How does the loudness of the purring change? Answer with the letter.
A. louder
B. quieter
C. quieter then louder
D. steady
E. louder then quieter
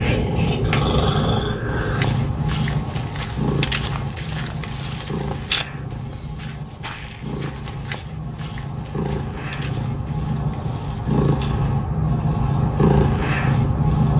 C.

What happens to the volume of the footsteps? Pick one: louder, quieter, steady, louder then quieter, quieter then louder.
quieter.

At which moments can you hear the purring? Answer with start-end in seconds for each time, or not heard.
0.0-14.1.